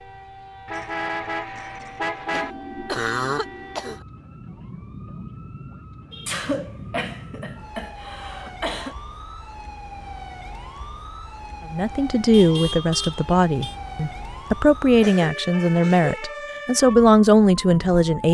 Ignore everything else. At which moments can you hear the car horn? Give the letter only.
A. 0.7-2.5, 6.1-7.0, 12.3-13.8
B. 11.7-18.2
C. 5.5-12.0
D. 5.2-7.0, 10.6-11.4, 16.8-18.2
A.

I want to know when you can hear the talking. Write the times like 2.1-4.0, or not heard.
11.7-18.2.